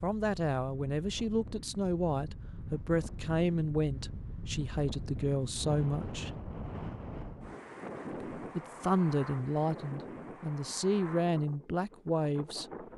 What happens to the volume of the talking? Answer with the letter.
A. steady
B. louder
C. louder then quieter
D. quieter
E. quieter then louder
A.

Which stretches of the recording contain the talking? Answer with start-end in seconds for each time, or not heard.
0.0-6.3, 8.3-12.8.